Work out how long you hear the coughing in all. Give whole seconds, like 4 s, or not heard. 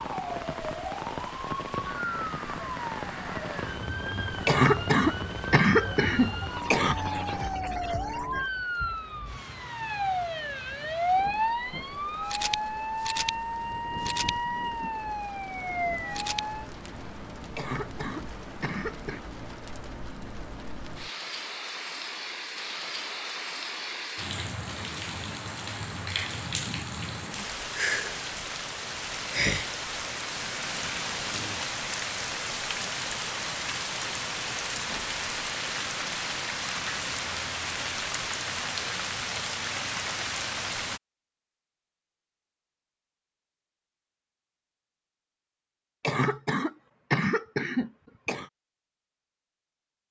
7 s.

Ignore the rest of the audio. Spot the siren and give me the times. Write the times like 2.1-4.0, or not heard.
0.0-16.7.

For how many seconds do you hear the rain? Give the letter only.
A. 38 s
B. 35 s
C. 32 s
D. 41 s
D.